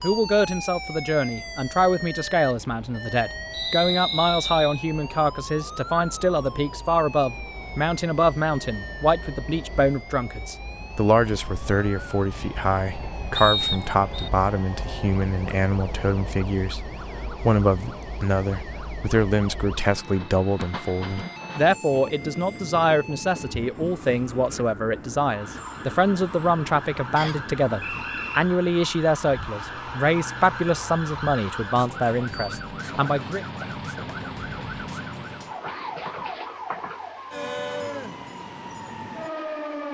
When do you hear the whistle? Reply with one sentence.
The whistle can be heard from 3.5 to 4.8 s, from 13.3 to 14.3 s and from 27.1 to 28.4 s.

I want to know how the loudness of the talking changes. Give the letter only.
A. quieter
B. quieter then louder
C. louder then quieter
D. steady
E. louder
D.